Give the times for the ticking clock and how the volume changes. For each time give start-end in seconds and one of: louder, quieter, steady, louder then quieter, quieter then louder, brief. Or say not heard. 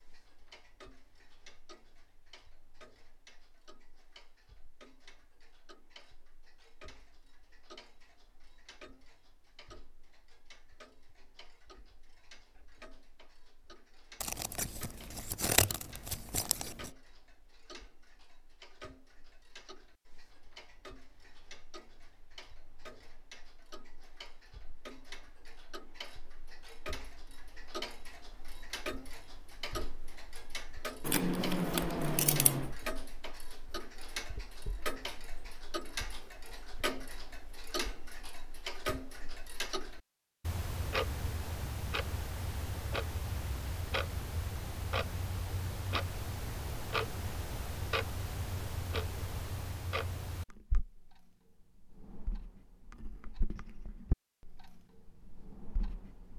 0.0-56.3 louder.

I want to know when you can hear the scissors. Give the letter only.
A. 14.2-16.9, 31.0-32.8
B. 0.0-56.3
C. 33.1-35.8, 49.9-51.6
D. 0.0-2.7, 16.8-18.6
A.